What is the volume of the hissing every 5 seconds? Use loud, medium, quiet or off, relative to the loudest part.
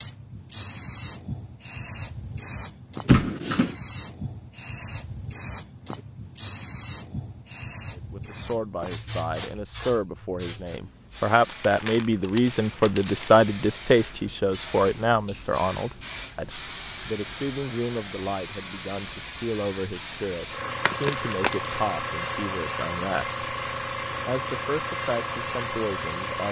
medium, medium, medium, loud, loud, loud.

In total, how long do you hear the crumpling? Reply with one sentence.
The crumpling can be heard for 4 seconds in total.